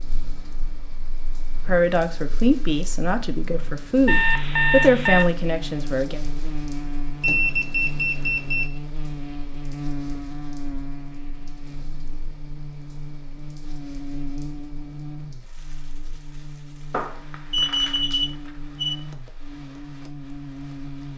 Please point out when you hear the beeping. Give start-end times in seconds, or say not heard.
4.0-5.2, 7.2-8.7, 16.9-18.9.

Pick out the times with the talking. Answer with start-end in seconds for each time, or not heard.
1.6-6.2.